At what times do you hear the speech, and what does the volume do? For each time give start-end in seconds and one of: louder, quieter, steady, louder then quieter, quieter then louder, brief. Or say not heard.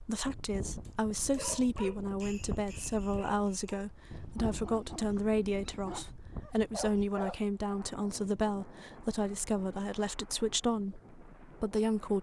0.0-12.1 steady.